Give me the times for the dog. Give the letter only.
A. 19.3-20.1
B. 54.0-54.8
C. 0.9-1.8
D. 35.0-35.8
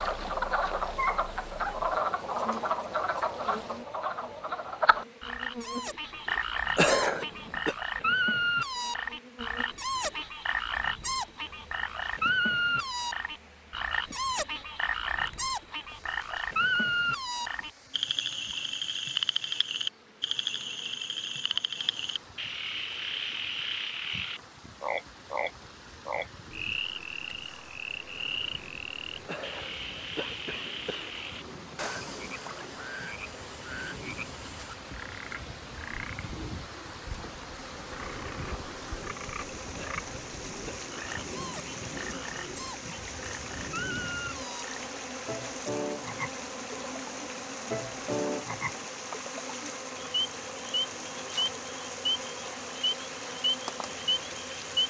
C.